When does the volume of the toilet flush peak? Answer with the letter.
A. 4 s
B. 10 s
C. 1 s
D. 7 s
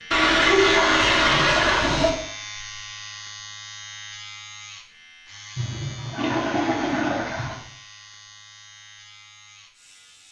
C.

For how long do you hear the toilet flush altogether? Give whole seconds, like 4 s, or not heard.
4 s.